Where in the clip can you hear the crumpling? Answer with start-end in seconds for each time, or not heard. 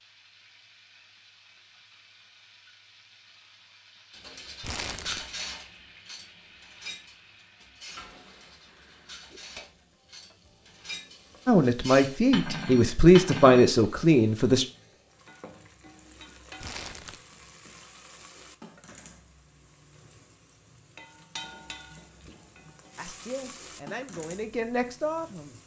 4.6-5.3, 16.6-17.2.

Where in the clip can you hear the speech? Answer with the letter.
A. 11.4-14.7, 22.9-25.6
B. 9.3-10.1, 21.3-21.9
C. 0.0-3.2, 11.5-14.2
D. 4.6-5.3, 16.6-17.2
A.